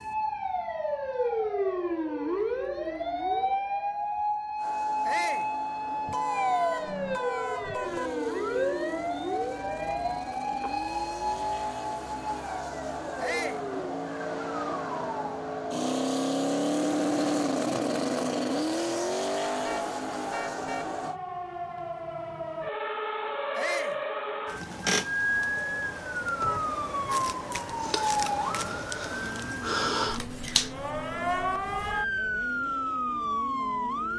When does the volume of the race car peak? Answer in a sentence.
The loudest moment of the race car is at 17 seconds.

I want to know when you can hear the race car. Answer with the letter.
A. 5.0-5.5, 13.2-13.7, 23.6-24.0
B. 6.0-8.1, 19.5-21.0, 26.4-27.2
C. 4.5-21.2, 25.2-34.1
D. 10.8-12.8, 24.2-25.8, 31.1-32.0
C.